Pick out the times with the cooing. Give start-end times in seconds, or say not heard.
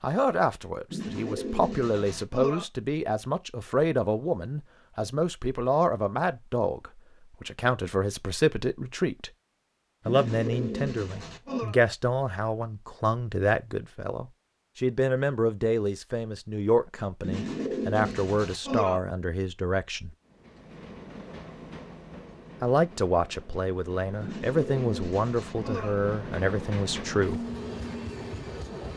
0.9-2.6, 10.1-11.8, 17.2-19.0, 24.2-25.9.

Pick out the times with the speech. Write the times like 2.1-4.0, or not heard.
0.0-9.3, 10.1-20.1, 22.6-27.4.